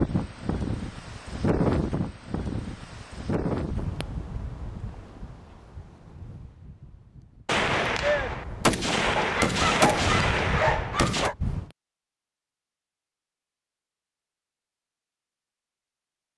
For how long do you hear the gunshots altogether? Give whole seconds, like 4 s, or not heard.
4 s.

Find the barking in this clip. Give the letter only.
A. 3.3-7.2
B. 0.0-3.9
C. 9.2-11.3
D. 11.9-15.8
C.